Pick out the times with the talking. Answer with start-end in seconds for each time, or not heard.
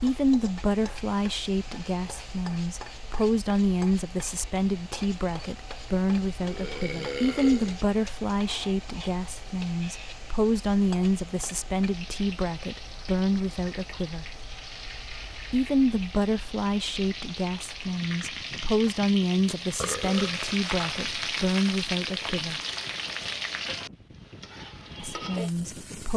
0.0-14.2, 15.5-22.6, 24.9-26.1.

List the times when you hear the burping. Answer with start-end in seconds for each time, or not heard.
6.4-7.8, 19.4-20.6.